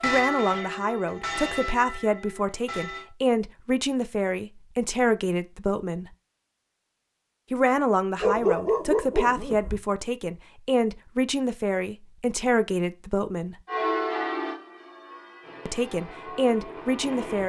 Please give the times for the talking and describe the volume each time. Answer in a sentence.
You can hear the talking from 0.0 to 6.1 s, at a steady volume; from 7.5 to 13.6 s, at a steady volume; and briefly from 15.7 to 17.4 s.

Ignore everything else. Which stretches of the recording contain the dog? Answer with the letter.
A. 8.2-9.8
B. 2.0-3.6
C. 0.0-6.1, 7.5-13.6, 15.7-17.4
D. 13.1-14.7
A.